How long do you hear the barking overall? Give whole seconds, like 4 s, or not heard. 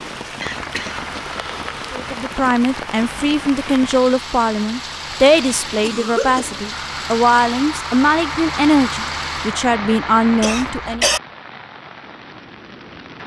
not heard.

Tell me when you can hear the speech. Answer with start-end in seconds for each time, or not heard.
1.9-11.1.